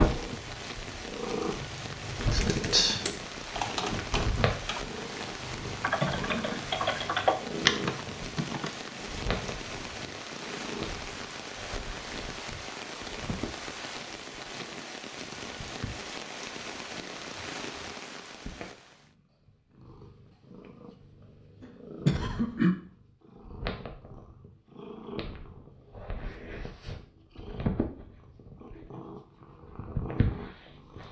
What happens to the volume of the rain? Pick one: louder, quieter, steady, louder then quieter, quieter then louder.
steady.